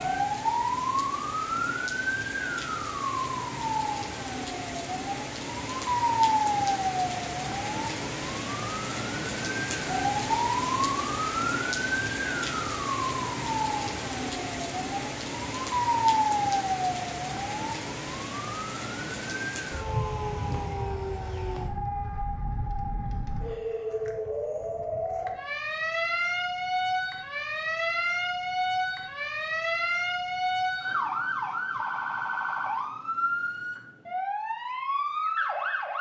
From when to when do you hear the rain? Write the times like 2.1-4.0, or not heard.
0.0-20.9.